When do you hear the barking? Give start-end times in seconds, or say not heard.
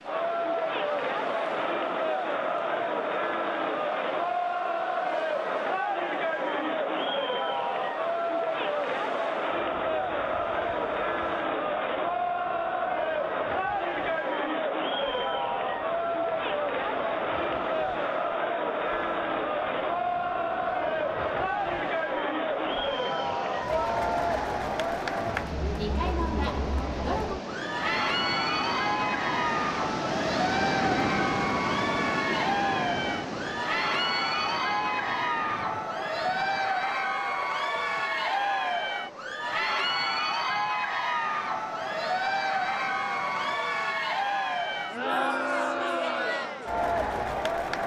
not heard.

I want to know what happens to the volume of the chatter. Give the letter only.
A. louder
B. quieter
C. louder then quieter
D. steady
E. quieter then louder
D.